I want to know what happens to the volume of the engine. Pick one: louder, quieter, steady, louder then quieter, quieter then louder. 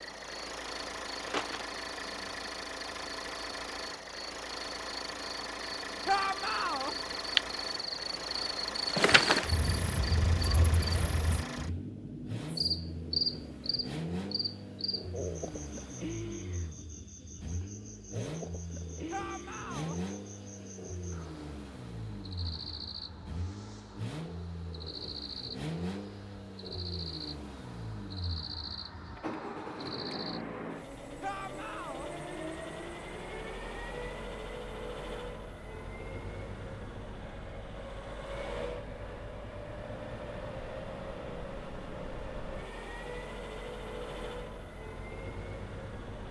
steady.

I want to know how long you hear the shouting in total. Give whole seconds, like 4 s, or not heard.
3 s.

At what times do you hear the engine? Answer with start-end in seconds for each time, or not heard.
0.0-46.2.